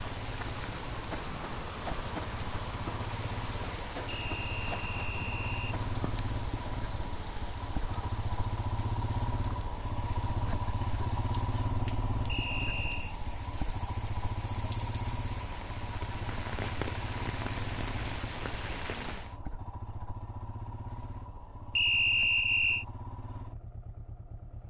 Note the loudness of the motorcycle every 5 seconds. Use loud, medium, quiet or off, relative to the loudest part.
medium, loud, loud, medium, medium.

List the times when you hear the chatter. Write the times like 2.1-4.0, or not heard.
not heard.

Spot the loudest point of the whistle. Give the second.
22 s.